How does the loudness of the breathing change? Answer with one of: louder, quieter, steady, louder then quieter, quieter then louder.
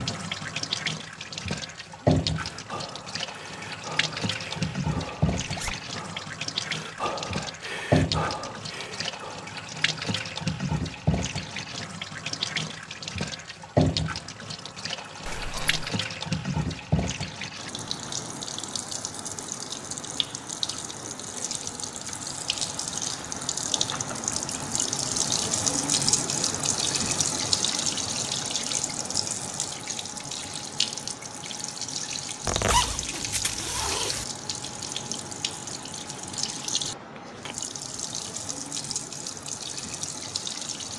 louder.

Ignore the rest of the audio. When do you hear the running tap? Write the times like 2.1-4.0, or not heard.
0.0-40.9.